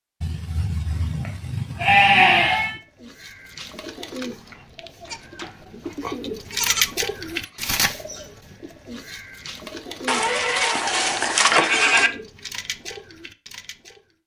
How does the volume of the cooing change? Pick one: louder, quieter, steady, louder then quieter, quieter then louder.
louder then quieter.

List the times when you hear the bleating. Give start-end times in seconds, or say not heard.
0.2-2.8, 5.0-7.6, 10.1-12.1.